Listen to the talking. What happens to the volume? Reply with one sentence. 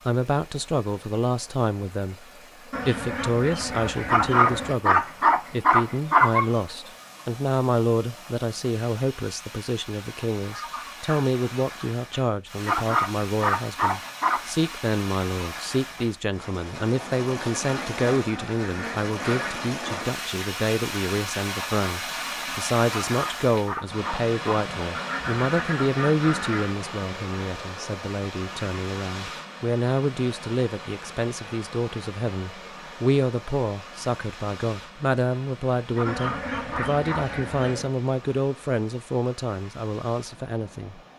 The loudness of the talking stays about the same.